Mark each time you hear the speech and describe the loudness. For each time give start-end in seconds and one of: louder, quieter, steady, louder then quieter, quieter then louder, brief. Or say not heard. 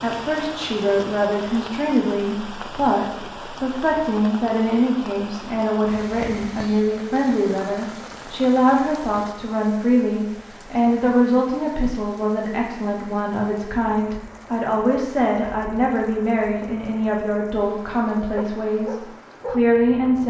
0.0-20.2 steady.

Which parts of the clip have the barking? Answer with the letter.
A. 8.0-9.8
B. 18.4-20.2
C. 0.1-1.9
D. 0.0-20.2
B.